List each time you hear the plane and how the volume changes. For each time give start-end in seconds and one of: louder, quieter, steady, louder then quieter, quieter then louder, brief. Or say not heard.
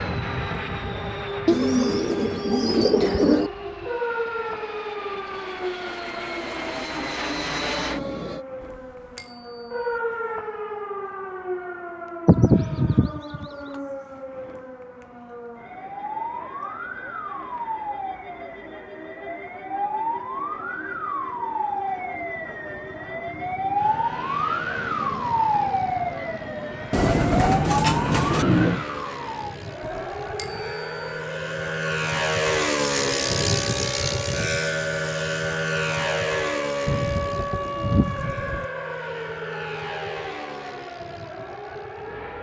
0.0-8.4 quieter then louder
23.8-42.3 louder then quieter.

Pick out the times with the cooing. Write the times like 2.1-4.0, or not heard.
1.4-3.5, 12.2-13.4, 26.9-28.9, 36.9-38.6.